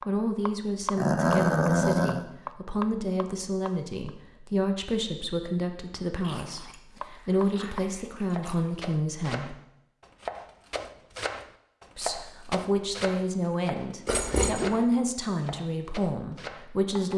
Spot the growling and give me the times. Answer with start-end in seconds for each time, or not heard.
0.9-2.2, 6.2-8.7, 14.1-14.7.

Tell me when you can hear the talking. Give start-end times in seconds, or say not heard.
0.1-9.6, 11.9-17.1.